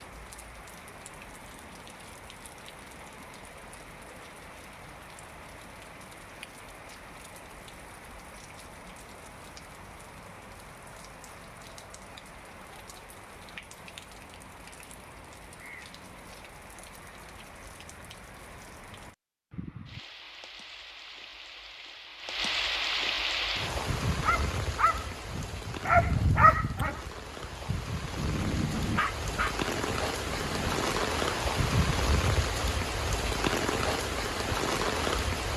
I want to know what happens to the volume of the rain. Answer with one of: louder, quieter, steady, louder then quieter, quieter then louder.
louder.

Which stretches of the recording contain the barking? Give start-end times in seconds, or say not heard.
23.4-30.9.